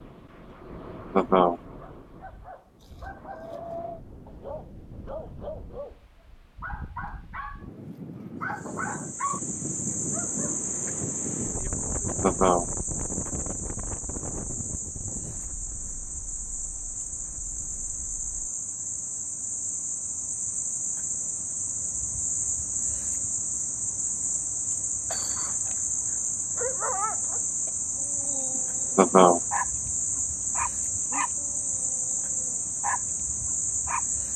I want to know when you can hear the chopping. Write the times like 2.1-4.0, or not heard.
not heard.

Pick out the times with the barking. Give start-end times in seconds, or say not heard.
1.8-6.0, 6.6-10.9, 25.1-34.0.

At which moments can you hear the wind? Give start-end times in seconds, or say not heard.
0.0-18.5.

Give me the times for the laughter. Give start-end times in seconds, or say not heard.
1.1-1.6, 12.2-12.7, 28.9-29.4.